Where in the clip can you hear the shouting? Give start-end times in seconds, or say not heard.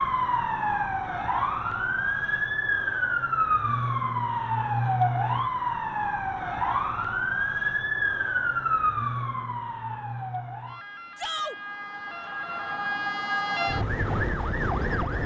11.2-11.6.